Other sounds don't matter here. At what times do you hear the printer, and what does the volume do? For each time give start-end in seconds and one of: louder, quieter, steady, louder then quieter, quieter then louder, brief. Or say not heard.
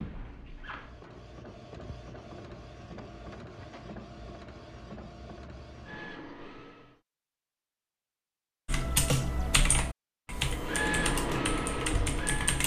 0.0-7.0 steady
10.3-12.6 brief.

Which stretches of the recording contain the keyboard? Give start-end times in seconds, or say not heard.
8.7-12.6.